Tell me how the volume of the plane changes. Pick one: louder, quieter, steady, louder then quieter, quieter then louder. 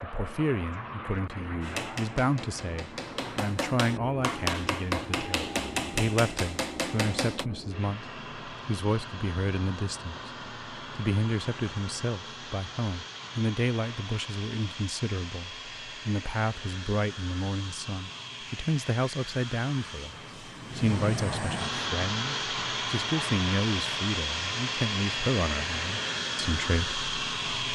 louder.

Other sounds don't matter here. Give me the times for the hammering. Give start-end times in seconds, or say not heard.
1.6-7.5.